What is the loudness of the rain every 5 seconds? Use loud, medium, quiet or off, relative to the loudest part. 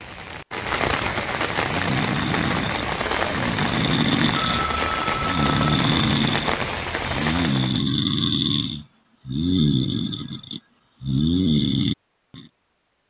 loud, loud, off.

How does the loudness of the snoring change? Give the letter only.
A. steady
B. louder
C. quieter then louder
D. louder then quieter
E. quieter
A.